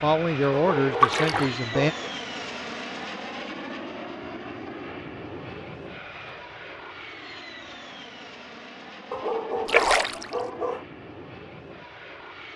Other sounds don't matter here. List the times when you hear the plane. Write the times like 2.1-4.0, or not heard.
0.0-12.5.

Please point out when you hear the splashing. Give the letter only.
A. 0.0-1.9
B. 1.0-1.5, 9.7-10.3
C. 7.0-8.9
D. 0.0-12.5
B.